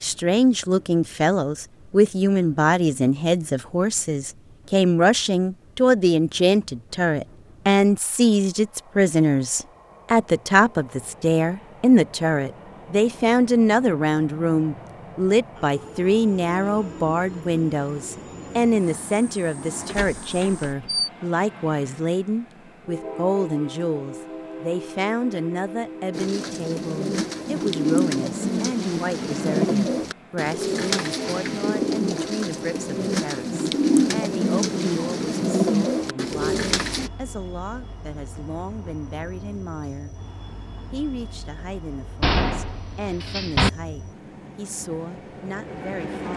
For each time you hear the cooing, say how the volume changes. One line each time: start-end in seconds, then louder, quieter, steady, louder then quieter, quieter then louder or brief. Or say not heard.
26.1-37.1 steady.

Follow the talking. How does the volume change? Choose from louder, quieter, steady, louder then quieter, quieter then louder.
quieter.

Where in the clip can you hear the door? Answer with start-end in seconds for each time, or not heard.
19.9-21.1, 42.2-43.7.